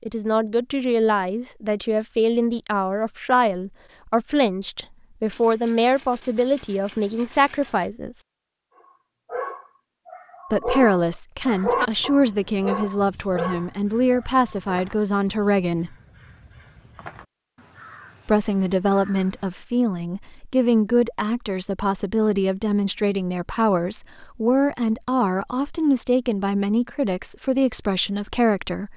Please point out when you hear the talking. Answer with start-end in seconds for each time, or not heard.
0.0-8.2, 10.5-15.9, 18.2-28.9.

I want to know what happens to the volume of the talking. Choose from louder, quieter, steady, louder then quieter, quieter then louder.
steady.